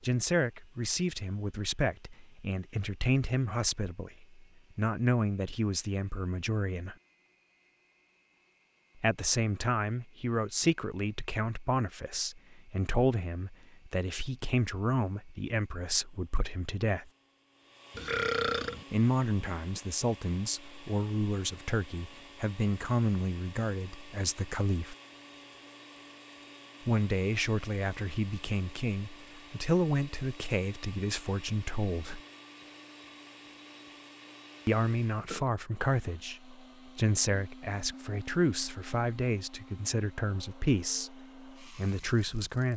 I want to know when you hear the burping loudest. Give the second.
18 s.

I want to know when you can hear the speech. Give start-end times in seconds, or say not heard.
0.0-7.0, 9.0-17.1, 18.9-24.9, 26.9-32.2, 34.6-42.7.